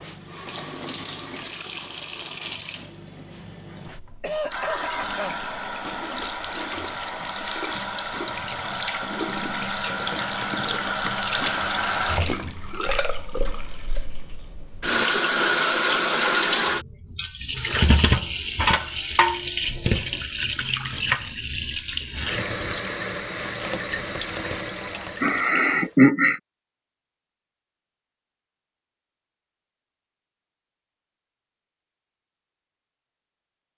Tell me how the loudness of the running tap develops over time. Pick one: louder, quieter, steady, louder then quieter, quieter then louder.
louder then quieter.